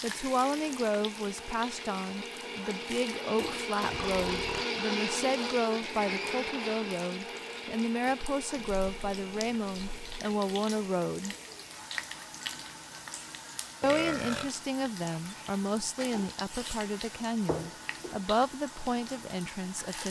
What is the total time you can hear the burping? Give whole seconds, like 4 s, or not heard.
3 s.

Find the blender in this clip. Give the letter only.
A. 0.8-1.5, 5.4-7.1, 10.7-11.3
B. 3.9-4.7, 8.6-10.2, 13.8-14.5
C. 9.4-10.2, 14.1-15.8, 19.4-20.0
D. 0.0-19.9
D.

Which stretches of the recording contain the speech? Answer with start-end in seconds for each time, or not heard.
0.0-11.3, 13.8-20.0.